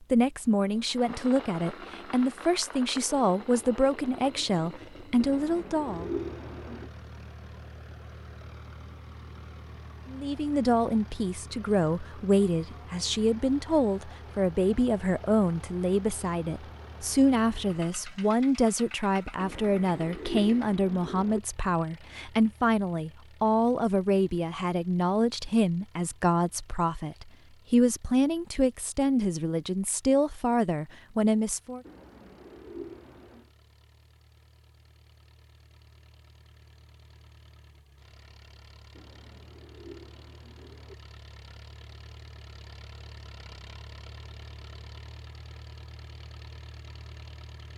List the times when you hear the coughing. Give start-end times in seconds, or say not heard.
not heard.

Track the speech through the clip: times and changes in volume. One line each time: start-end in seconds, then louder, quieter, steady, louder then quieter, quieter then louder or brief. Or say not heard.
0.1-6.1 steady
10.1-31.8 steady.